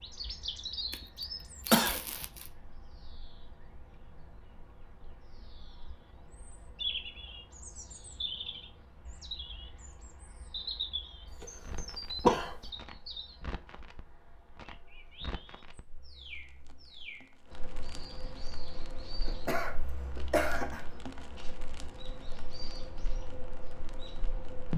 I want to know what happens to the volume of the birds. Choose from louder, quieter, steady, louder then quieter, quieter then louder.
quieter.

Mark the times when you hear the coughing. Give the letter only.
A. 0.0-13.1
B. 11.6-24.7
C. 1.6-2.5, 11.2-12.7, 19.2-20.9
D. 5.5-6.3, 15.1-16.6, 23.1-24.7
C.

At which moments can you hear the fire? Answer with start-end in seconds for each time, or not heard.
11.6-24.7.